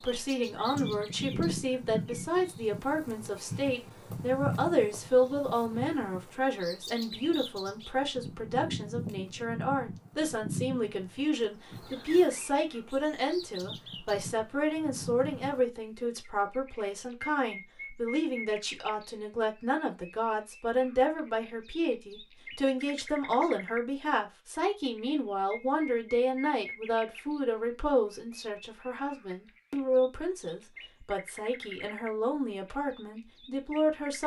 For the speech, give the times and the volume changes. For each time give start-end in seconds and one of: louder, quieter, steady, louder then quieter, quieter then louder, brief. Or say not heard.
0.0-34.2 steady.